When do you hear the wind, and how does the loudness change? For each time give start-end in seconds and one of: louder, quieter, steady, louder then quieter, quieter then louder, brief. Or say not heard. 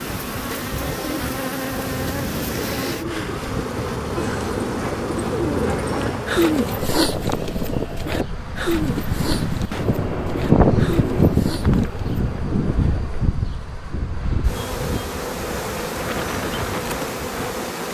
0.2-17.7 louder then quieter.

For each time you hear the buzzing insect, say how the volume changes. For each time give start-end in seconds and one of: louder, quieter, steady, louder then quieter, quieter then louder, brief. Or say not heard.
0.0-17.8 quieter then louder.